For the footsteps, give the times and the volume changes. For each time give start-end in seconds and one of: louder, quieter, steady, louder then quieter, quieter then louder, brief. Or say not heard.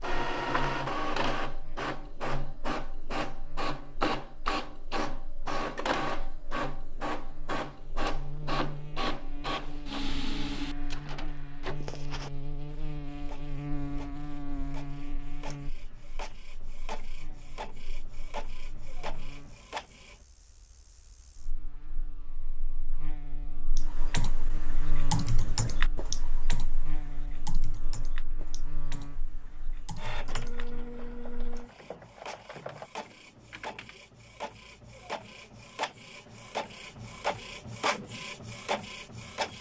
not heard.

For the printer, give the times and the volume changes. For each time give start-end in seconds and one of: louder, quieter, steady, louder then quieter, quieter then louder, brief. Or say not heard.
0.0-20.2 quieter then louder
29.9-39.5 louder.